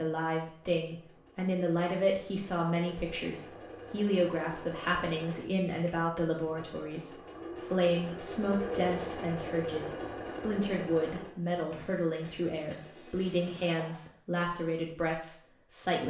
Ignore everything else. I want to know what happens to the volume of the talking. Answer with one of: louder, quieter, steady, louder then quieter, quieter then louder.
steady.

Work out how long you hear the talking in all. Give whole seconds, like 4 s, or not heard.
16 s.